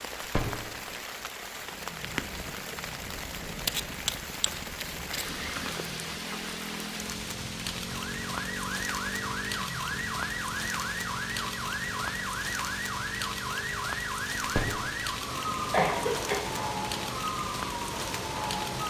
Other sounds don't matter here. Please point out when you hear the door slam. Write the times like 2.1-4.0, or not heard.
0.3-0.8, 14.6-15.1.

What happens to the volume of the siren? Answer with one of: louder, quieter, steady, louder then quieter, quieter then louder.
steady.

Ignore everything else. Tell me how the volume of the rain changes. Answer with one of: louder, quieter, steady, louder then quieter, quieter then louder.
steady.